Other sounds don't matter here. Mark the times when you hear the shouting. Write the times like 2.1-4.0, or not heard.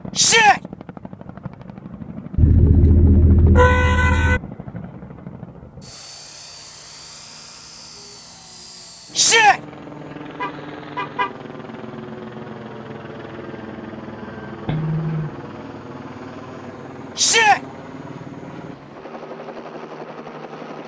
0.1-0.6, 9.2-9.6, 17.1-17.6.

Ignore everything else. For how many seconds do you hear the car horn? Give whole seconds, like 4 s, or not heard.
4 s.